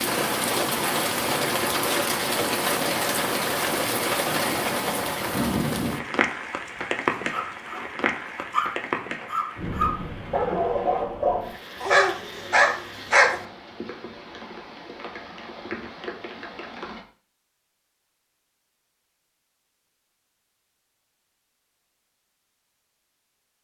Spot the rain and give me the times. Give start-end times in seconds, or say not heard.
0.0-17.1.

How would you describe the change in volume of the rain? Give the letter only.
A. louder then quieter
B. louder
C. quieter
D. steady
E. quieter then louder
C.